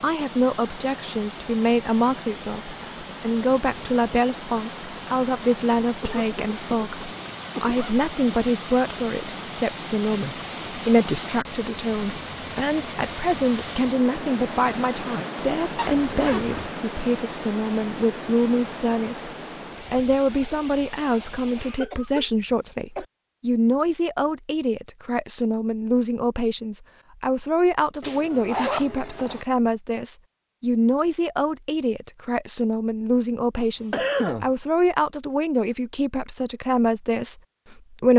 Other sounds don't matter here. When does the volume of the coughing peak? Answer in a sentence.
The loudest moment of the coughing is at 34 seconds.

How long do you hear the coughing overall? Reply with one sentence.
You can hear the coughing for 4 seconds altogether.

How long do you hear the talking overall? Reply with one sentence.
The talking can be heard for 38 seconds in total.